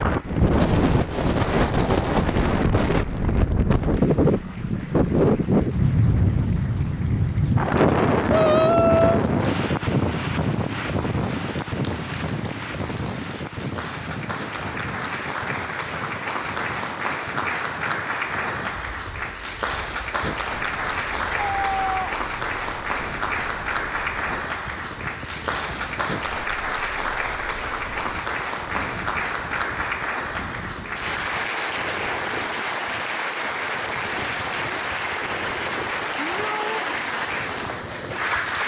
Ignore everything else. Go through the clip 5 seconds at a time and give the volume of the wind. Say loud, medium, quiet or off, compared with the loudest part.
loud, loud, medium, quiet, quiet, quiet, quiet, quiet.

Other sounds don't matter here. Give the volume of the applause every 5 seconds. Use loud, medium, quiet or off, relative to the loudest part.
quiet, quiet, medium, loud, loud, loud, loud, loud.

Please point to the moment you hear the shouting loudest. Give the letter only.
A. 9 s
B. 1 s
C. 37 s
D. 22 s
A.